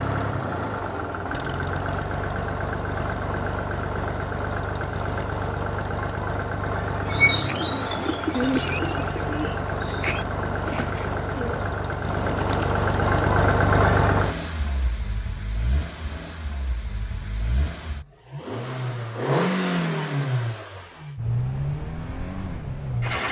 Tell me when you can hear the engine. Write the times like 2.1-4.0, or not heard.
0.0-23.2.